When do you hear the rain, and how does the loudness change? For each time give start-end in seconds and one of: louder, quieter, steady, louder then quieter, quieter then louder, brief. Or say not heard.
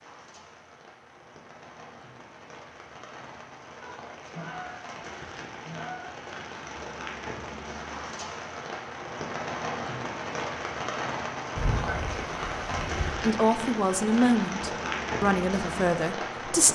0.0-16.7 louder.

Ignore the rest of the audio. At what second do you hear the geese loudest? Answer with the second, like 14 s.
12 s.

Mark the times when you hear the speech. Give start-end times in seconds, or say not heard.
13.2-16.7.